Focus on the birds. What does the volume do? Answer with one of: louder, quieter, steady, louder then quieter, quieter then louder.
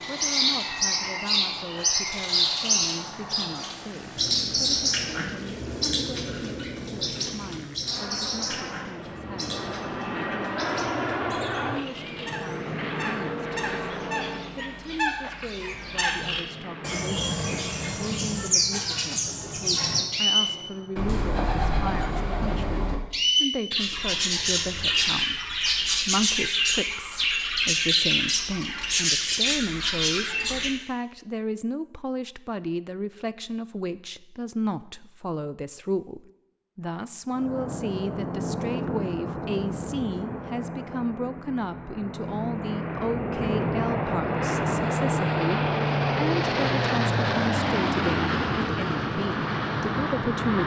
quieter then louder.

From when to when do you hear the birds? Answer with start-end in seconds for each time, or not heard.
0.0-30.7.